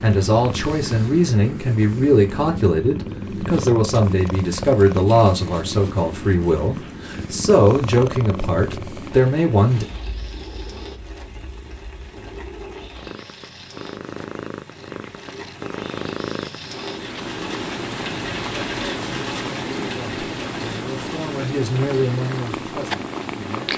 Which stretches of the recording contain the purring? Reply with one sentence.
The purring can be heard from 0.0 to 23.7 s.